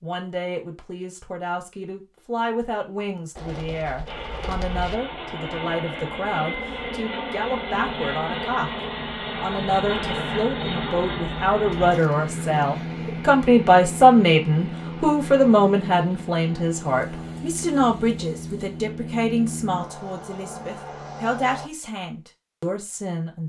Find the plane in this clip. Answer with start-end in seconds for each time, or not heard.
4.0-21.7.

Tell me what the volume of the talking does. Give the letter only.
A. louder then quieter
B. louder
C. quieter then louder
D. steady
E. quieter
A.